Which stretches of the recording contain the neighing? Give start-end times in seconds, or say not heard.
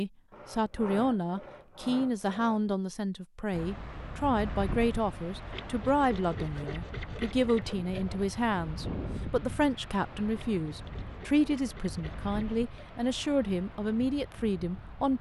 not heard.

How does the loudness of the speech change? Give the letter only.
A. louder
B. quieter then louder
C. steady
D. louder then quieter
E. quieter
C.